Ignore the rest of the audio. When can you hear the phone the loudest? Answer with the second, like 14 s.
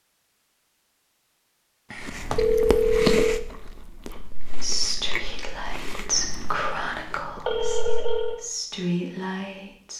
3 s.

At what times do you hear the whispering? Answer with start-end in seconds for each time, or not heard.
4.1-9.9.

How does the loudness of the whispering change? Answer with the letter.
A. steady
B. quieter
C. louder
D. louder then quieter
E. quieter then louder
E.